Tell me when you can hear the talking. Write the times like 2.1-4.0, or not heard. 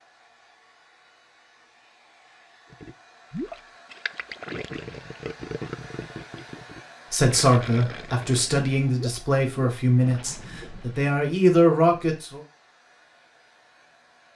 7.1-12.4.